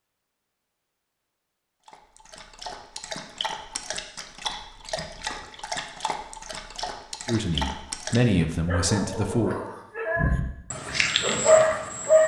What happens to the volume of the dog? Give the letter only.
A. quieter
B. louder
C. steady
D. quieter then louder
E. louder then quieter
B.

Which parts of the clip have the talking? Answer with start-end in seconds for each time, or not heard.
7.2-9.6.